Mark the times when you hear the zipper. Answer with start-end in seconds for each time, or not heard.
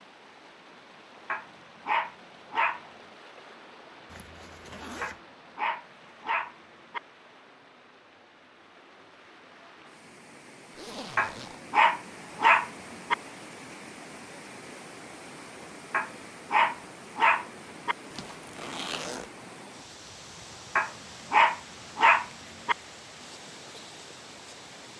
4.0-5.2, 10.8-11.6, 18.1-19.3.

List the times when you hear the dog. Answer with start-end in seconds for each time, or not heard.
1.3-2.8, 5.0-7.0, 11.2-13.2, 15.9-17.9, 20.8-22.8.